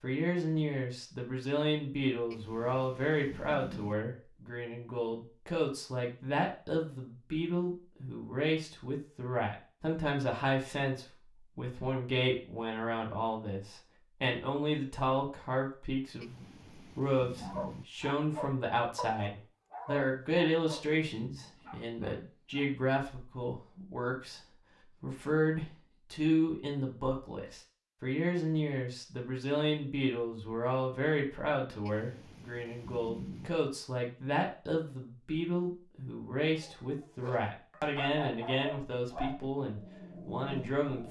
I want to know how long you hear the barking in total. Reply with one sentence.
The barking can be heard for 10 seconds in total.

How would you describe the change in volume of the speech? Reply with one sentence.
The loudness of the speech stays about the same.